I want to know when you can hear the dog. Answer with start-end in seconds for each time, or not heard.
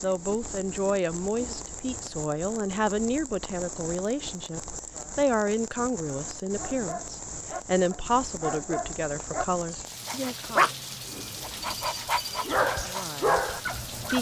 6.5-14.1.